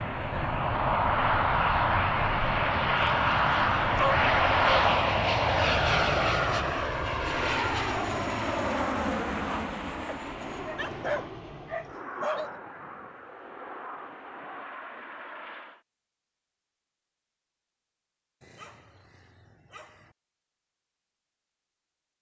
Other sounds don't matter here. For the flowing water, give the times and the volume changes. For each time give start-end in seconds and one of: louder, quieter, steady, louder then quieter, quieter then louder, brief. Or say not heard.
not heard.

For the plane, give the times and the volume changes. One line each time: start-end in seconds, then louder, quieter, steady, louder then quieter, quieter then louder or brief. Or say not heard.
0.0-15.8 quieter.